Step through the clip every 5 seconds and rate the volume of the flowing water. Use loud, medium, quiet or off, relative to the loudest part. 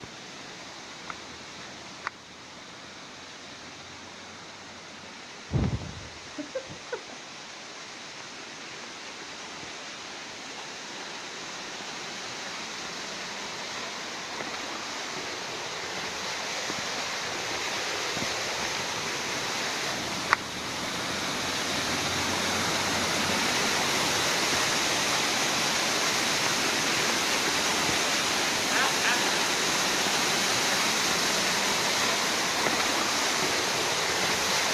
quiet, quiet, medium, medium, loud, loud, loud.